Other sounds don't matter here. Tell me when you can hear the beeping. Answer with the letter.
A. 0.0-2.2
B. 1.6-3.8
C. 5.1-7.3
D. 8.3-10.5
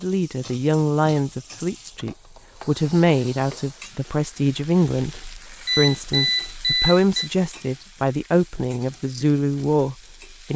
C.